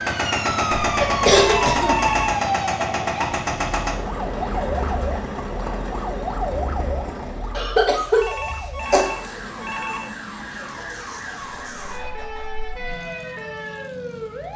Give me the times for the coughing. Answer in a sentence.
The coughing can be heard from 0.8 to 2.1 s and from 7.5 to 9.1 s.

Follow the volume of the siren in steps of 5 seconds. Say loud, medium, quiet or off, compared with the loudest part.
loud, medium, medium.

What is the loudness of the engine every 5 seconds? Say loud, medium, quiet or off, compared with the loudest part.
loud, medium, quiet.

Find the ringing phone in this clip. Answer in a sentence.
The ringing phone can be heard from 1.4 to 2.4 s and from 8.2 to 10.1 s.